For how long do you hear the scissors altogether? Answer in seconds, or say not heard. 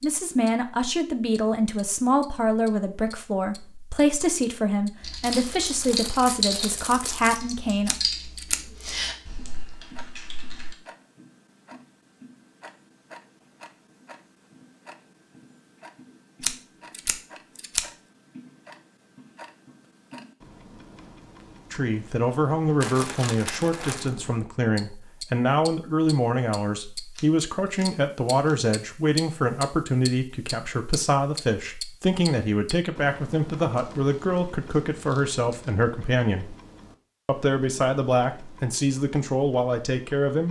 4 s.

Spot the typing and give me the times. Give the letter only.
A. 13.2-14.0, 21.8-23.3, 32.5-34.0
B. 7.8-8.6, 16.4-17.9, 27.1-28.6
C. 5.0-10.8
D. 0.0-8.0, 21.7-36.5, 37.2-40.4
C.